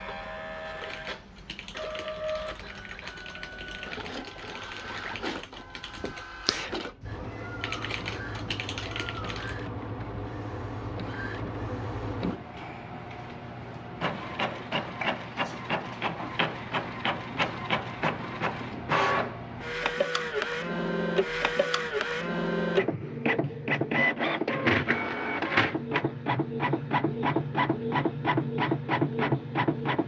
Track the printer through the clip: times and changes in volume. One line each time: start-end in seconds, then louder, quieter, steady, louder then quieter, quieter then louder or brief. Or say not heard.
0.0-30.0 louder.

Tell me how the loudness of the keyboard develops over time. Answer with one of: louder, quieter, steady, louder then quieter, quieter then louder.
louder.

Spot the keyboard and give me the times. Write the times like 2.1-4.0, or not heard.
0.8-9.6.